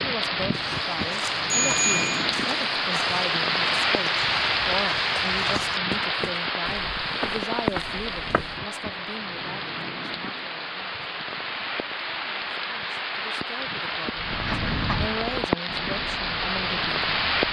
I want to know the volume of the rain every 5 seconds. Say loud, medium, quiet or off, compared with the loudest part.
loud, loud, medium, loud.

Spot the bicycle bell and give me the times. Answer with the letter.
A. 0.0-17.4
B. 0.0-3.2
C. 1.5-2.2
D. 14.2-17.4
C.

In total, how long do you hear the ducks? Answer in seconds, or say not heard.
3 s.